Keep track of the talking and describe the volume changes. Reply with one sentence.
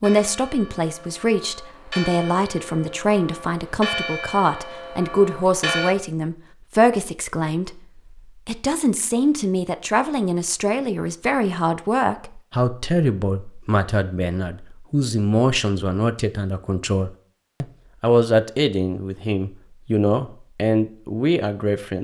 The loudness of the talking stays about the same.